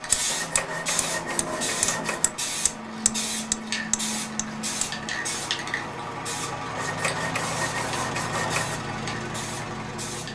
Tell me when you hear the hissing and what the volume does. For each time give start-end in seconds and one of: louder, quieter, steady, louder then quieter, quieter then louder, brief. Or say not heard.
0.0-10.3 quieter.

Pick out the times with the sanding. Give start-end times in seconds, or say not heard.
0.2-2.3, 6.8-8.8.